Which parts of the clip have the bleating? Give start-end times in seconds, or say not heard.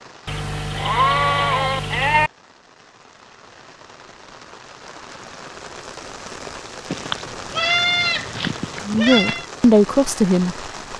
0.2-2.3, 6.9-9.4.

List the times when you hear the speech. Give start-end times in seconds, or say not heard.
8.8-10.7.